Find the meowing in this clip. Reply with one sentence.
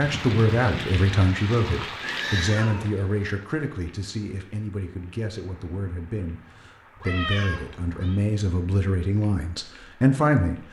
The meowing can be heard from 2.0 to 2.9 s and from 7.0 to 8.2 s.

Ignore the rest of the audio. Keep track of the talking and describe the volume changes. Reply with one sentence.
The volume of the talking goes down, then up.